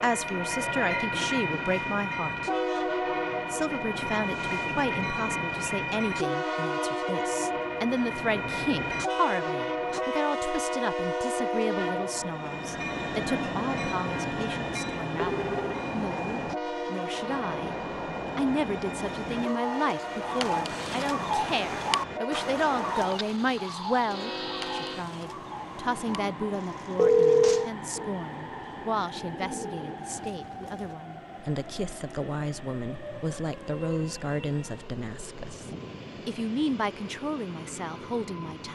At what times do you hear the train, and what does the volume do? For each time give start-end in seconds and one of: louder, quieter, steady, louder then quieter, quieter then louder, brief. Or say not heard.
0.0-38.7 quieter.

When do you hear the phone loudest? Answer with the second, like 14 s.
27 s.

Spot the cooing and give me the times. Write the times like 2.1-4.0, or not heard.
19.2-30.9.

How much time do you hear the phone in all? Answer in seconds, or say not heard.
2 s.